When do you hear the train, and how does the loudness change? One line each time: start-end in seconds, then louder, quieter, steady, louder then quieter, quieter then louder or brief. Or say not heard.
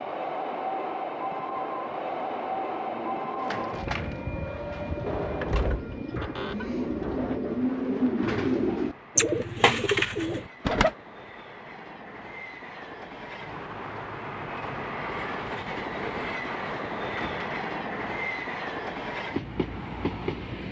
0.0-20.6 quieter then louder.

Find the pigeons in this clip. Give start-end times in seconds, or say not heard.
2.0-10.9.